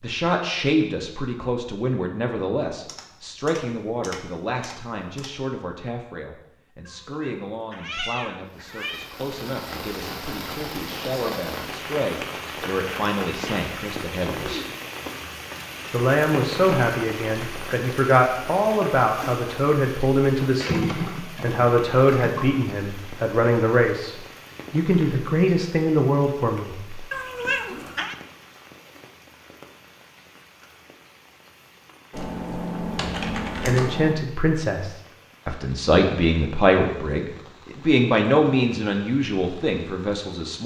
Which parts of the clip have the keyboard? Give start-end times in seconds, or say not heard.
2.9-5.3, 20.6-22.6, 32.1-34.1.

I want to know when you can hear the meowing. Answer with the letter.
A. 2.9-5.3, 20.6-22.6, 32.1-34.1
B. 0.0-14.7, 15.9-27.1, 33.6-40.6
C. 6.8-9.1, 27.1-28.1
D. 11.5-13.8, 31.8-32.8
C.